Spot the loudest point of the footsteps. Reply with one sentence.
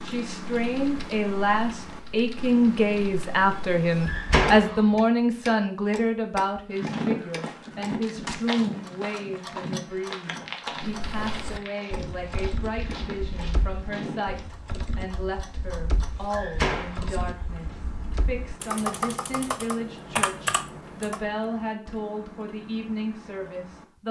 The volume of the footsteps peaks at 7 seconds.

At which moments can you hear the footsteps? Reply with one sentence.
You can hear the footsteps from 6.7 to 14.4 s.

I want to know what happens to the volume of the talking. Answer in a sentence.
The volume of the talking goes down.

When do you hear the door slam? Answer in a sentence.
The door slam can be heard from 4.0 to 5.0 s and from 16.3 to 17.9 s.